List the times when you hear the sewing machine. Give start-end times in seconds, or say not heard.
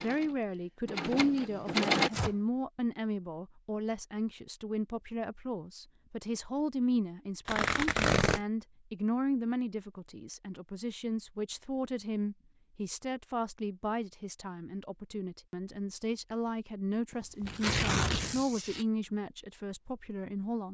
0.0-2.1.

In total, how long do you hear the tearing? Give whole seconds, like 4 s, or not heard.
3 s.